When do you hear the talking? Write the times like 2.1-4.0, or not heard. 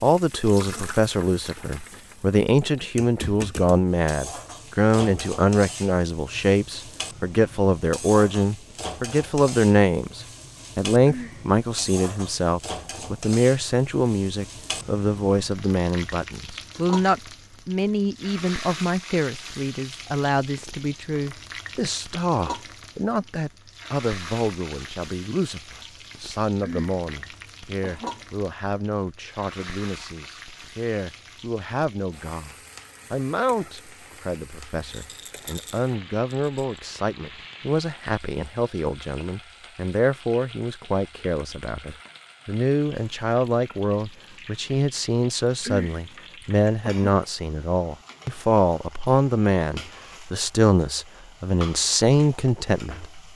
0.0-53.2.